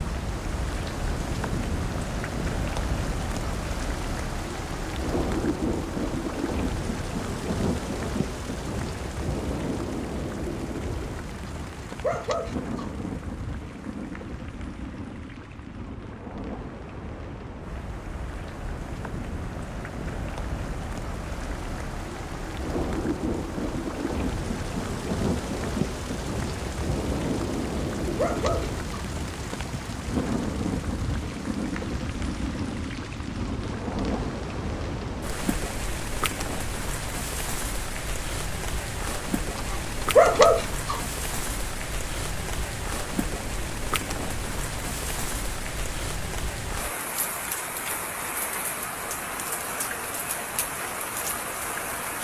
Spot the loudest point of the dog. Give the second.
40 s.